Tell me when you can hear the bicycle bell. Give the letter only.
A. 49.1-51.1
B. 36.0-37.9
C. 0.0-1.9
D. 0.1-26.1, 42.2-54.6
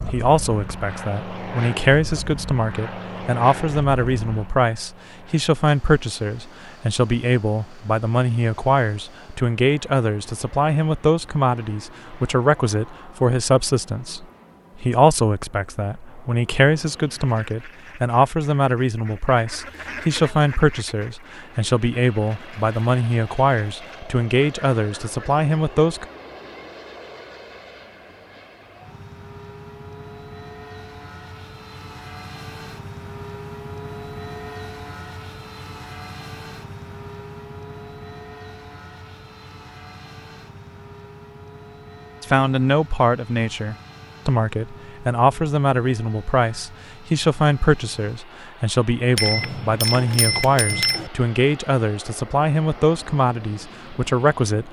A.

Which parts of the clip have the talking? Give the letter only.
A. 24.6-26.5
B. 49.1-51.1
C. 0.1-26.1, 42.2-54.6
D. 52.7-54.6
C.